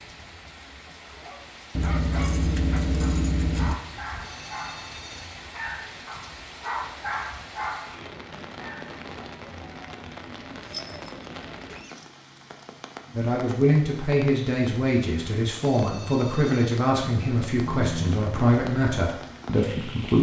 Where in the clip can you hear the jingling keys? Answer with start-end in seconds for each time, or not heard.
1.8-3.8, 10.6-11.9.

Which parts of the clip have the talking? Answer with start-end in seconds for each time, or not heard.
13.2-20.1.